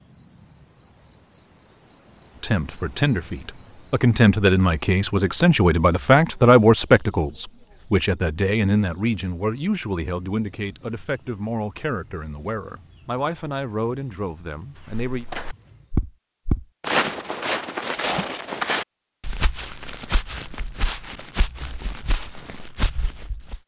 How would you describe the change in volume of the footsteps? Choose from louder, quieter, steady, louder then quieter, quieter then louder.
quieter.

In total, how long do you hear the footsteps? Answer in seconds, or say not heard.
9 s.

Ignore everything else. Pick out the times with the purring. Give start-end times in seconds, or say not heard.
not heard.